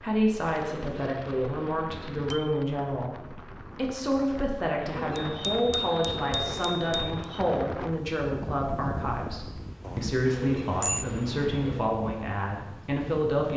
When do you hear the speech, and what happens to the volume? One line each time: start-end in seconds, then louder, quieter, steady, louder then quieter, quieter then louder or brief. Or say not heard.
0.0-13.5 steady.